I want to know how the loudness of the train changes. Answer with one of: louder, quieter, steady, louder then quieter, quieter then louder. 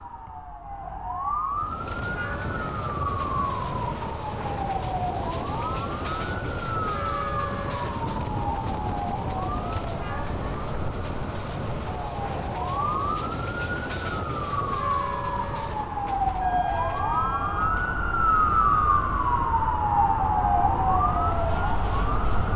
quieter.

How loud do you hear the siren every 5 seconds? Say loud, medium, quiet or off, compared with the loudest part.
medium, medium, medium, loud, loud.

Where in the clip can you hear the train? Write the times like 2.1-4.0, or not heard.
1.5-22.5.